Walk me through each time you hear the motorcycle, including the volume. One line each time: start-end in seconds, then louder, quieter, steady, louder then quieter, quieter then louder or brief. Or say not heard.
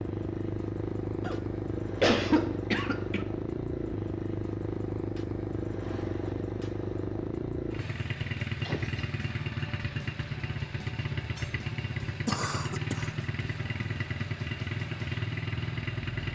0.0-16.3 steady.